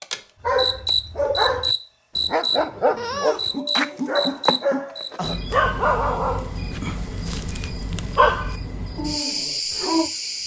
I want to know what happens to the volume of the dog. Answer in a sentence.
The loudness of the dog goes down, then up.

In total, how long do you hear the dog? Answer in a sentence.
The dog can be heard for 10 seconds in total.